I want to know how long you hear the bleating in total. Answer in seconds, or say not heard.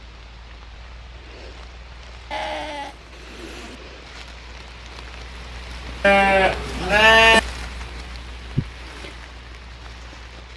3 s.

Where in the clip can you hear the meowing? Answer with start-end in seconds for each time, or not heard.
not heard.